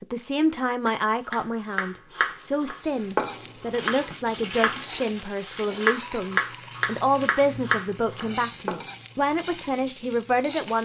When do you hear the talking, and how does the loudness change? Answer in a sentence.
You can hear the talking from 0.0 to 10.8 s, at a steady volume.